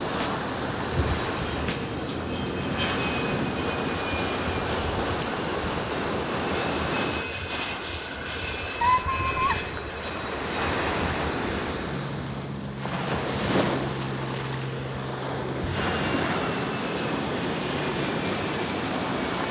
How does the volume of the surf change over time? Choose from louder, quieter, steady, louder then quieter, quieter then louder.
steady.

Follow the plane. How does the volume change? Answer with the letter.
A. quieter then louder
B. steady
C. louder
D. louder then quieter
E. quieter
B.